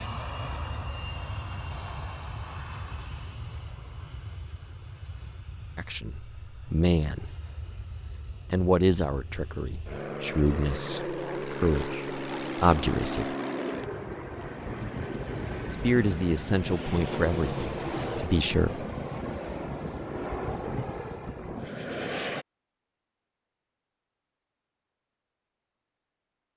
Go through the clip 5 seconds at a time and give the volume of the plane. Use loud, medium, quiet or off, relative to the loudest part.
medium, quiet, loud, loud, loud, off.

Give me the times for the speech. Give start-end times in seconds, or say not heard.
5.8-7.3, 8.5-13.3, 15.7-18.9.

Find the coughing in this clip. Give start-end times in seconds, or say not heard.
not heard.